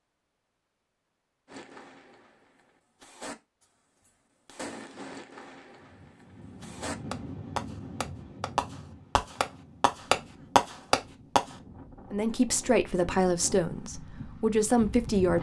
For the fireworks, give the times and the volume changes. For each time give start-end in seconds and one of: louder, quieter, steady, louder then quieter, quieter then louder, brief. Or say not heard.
1.4-11.6 louder.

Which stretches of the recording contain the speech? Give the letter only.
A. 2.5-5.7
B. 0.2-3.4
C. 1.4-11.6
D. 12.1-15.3
D.